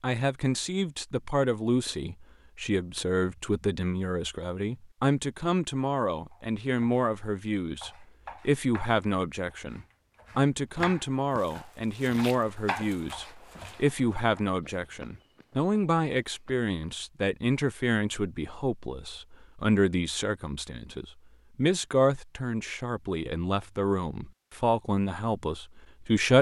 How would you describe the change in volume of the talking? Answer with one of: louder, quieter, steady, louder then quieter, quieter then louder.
steady.